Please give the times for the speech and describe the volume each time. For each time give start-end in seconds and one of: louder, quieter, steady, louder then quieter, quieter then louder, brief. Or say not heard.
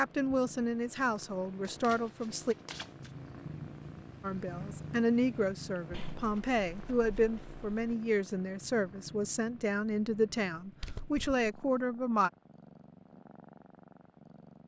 0.0-2.5 brief
4.2-12.3 steady.